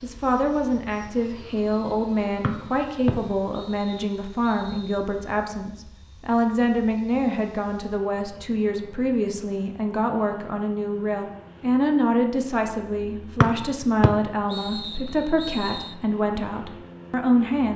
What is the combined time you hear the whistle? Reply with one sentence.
The whistle can be heard for 5 seconds in total.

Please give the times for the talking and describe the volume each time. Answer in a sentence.
The talking can be heard from 0.0 to 17.7 s, at a steady volume.